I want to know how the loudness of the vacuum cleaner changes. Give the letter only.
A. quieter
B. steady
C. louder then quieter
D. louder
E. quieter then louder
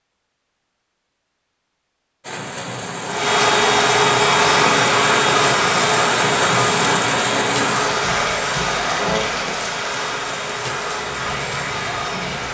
A.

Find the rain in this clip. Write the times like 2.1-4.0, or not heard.
2.2-12.4.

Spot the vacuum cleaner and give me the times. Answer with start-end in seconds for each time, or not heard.
3.0-12.4.